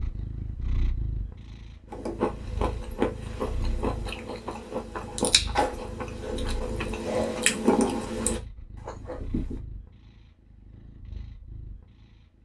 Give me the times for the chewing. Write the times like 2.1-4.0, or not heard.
1.9-9.6.